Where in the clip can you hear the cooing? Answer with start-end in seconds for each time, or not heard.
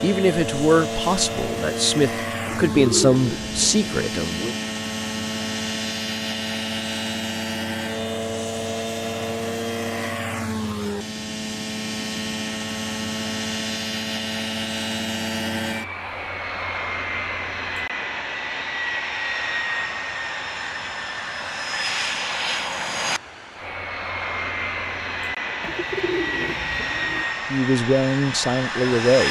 2.5-4.1, 25.6-27.2.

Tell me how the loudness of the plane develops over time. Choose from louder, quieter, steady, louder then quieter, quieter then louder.
steady.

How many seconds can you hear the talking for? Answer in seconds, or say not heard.
6 s.